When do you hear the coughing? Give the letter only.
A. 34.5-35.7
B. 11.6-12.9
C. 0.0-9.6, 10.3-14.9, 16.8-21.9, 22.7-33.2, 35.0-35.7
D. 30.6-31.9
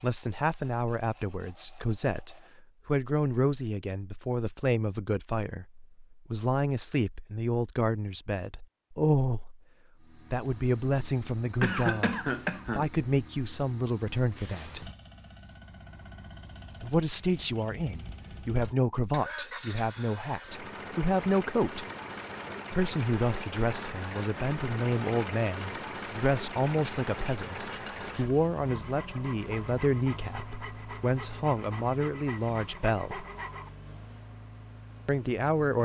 B.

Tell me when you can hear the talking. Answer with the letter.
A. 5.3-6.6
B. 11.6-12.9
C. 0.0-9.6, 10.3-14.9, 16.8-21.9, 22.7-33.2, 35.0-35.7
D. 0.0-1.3
C.